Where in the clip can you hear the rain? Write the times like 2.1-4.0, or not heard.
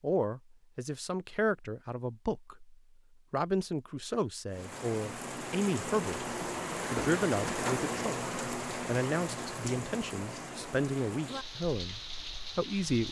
4.5-13.0.